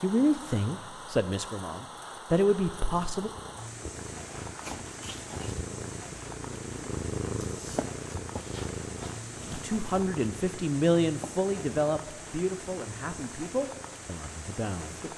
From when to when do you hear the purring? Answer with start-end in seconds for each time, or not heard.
2.6-15.1.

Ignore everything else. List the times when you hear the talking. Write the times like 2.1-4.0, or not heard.
0.0-3.3, 9.4-15.0.